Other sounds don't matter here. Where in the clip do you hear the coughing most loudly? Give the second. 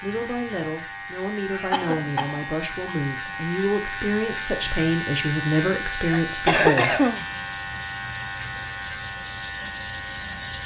7 s.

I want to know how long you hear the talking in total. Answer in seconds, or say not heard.
7 s.